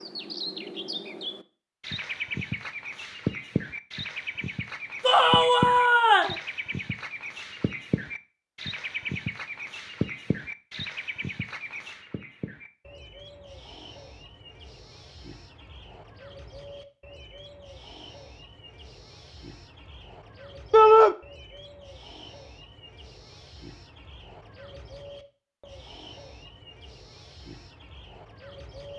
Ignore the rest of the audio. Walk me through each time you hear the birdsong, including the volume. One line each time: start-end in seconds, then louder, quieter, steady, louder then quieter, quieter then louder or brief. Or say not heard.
0.0-28.9 quieter.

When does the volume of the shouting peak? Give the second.
21 s.